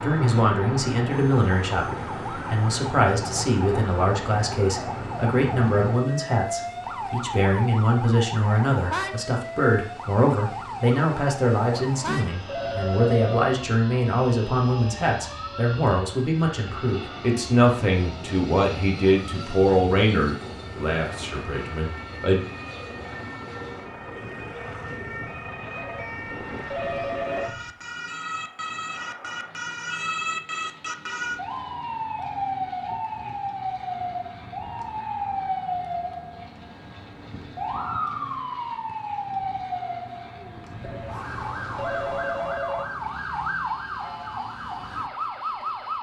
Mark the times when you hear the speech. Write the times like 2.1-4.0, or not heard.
0.0-22.4.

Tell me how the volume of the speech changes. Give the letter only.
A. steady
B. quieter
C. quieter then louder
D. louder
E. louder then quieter
A.